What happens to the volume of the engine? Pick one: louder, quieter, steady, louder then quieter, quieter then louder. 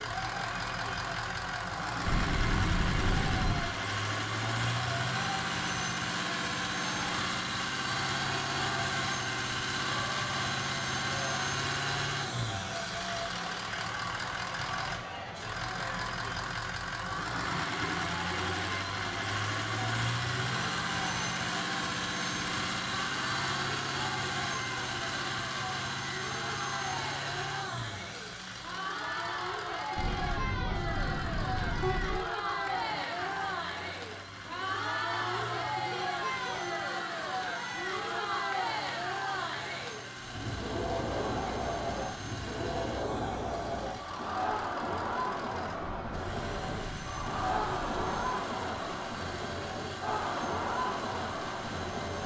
quieter.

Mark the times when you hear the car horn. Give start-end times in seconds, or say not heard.
2.0-3.8, 29.9-32.2, 45.8-48.4.